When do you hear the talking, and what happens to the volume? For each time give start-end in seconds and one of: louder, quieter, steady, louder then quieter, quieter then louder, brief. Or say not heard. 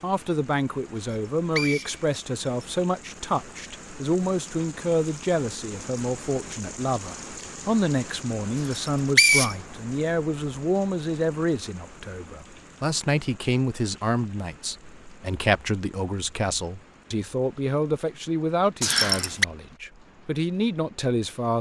0.0-21.5 steady.